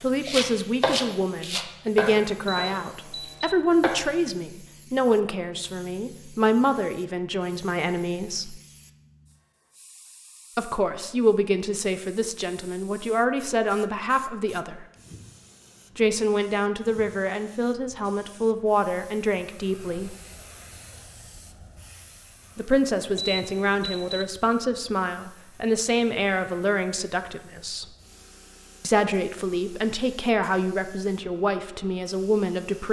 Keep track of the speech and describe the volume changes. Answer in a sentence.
The volume of the speech stays about the same.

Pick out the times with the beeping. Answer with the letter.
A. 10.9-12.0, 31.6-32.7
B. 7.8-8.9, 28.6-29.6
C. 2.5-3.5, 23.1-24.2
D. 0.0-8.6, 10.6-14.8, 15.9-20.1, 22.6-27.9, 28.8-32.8
C.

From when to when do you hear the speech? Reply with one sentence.
You can hear the speech from 0.0 to 8.6 s, from 10.6 to 14.8 s, from 15.9 to 20.1 s, from 22.6 to 27.9 s and from 28.8 to 32.8 s.